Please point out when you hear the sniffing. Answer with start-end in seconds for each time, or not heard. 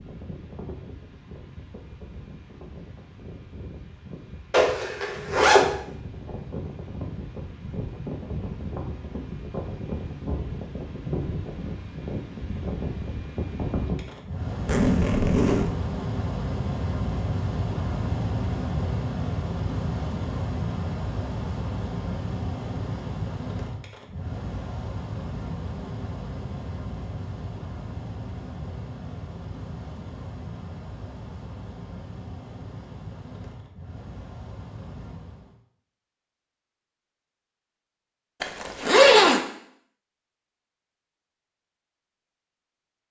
not heard.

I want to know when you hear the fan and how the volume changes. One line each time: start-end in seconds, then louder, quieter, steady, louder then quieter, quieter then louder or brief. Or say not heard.
0.0-35.6 louder then quieter.